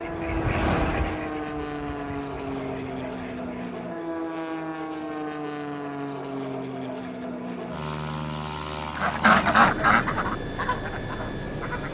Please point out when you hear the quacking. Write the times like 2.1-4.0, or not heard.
0.0-3.8, 8.9-11.8.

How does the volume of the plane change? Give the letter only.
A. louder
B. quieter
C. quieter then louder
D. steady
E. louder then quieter
D.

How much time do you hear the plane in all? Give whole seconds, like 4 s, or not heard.
12 s.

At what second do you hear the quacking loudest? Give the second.
9 s.